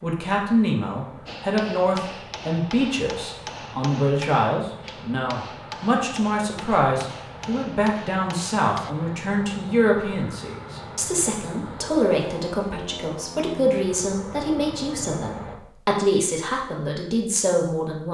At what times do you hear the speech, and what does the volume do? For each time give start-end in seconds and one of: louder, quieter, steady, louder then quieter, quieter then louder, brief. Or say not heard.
0.0-18.0 steady.